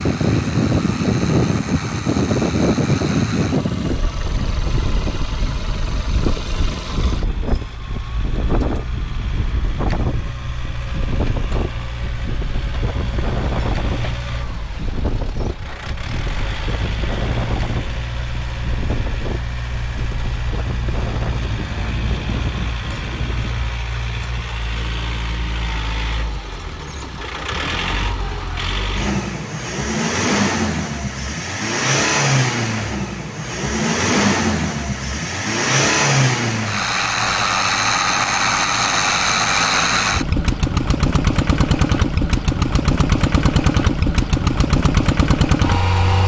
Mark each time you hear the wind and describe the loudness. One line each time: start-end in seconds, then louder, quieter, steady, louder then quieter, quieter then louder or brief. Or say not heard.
0.0-23.8 quieter.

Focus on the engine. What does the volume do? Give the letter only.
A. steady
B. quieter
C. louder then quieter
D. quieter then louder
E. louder
E.